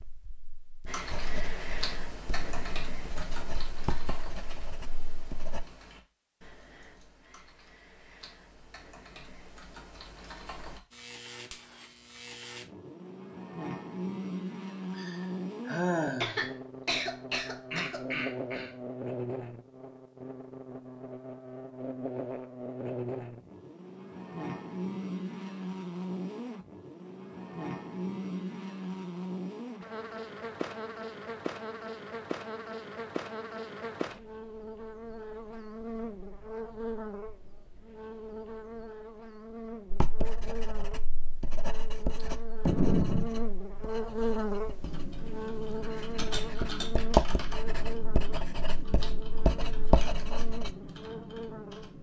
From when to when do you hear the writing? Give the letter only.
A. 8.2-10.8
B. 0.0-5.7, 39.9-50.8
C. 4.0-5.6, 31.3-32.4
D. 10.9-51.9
B.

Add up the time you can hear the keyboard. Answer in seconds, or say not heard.
17 s.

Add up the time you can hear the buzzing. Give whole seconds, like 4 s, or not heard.
41 s.